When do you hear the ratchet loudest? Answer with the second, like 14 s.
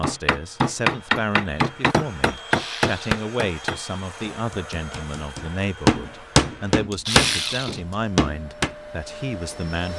7 s.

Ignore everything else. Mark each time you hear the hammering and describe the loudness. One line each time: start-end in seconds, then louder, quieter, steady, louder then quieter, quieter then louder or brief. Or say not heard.
0.0-8.7 quieter then louder.